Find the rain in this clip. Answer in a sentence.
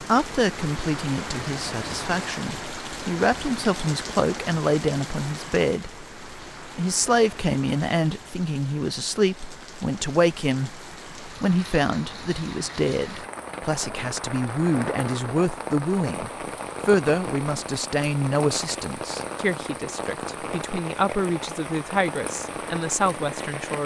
The rain can be heard from 0.0 to 23.8 s.